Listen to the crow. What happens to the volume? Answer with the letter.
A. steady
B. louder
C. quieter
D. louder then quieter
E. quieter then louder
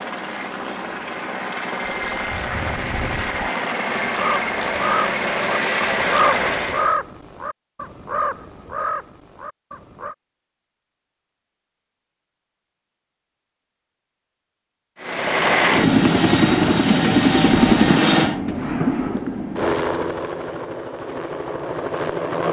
D.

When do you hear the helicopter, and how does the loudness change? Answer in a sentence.
You can hear the helicopter from 0.0 to 7.0 s, getting louder; and from 15.0 to 22.4 s, getting quieter.